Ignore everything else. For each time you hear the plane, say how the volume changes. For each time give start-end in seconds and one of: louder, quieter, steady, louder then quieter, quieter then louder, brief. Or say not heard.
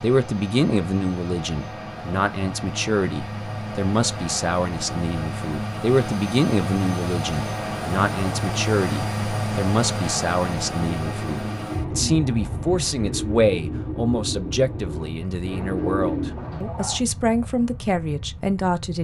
0.0-18.9 louder then quieter.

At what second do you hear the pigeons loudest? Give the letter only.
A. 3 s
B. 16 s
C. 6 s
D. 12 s
B.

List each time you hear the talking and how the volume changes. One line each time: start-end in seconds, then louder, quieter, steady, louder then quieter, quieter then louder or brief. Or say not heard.
0.0-18.9 steady.